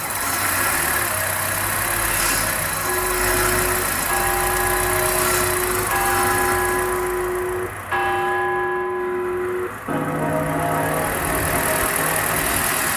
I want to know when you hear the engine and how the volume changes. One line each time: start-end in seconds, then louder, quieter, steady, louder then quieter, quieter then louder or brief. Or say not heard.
0.0-12.9 quieter then louder.